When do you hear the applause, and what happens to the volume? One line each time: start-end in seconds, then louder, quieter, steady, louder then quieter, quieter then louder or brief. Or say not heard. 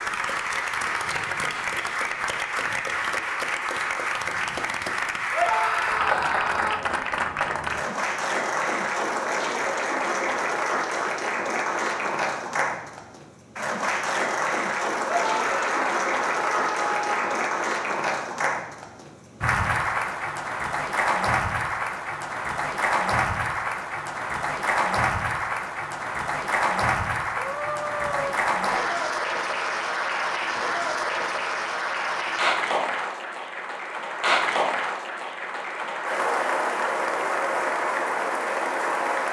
0.0-39.2 steady.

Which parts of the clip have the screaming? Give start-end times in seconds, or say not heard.
5.3-6.8, 15.1-17.5, 27.4-28.4.